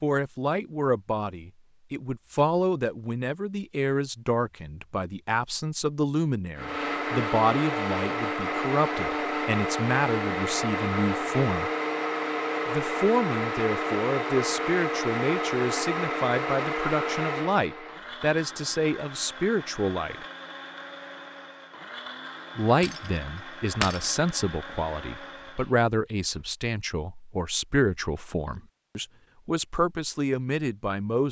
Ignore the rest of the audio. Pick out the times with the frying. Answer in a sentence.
The frying can't be heard in this clip.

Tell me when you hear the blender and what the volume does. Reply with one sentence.
You can hear the blender from 6.5 to 26.4 s, getting quieter.